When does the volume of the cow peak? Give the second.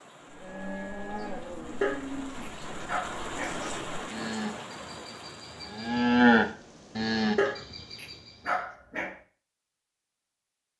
6 s.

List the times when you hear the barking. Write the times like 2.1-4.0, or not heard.
1.8-3.6, 7.3-9.2.